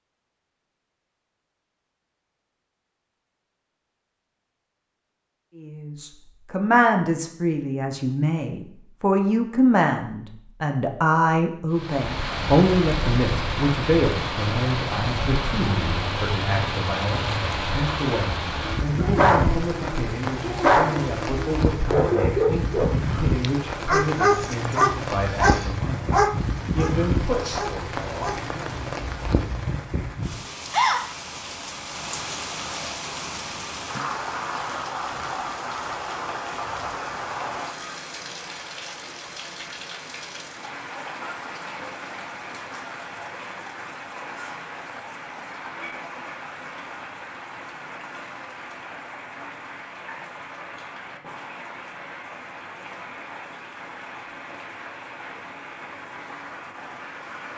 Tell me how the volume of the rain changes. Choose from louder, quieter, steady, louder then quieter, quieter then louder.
quieter.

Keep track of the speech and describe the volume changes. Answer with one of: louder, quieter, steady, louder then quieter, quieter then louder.
quieter.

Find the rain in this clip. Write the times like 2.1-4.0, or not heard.
11.7-57.5.